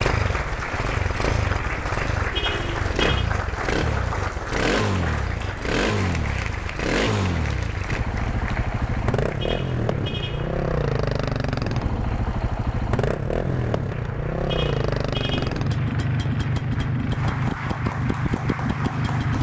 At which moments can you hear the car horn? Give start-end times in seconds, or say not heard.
2.3-3.3, 9.3-10.6, 14.4-15.5.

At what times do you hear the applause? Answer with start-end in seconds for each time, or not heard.
0.0-19.3.